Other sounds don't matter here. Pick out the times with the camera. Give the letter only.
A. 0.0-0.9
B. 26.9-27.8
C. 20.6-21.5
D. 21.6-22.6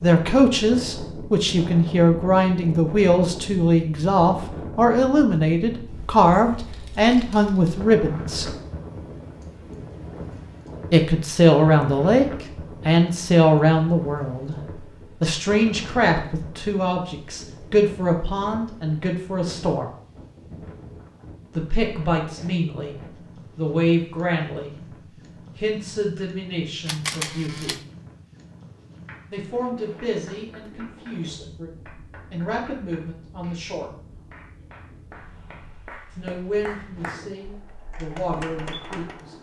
B.